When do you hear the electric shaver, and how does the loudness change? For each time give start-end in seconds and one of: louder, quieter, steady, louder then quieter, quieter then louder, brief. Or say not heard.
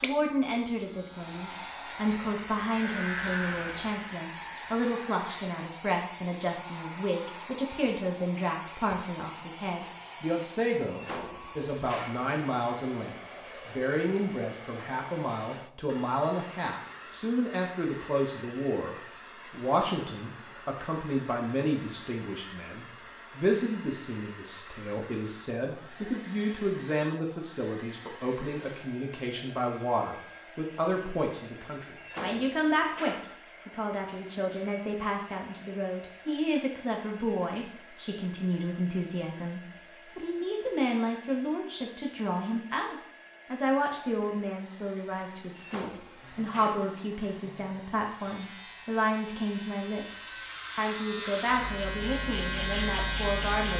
0.0-5.5 louder then quieter
46.2-53.7 louder.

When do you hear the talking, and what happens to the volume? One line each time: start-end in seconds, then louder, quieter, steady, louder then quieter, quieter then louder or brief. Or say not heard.
0.0-53.7 steady.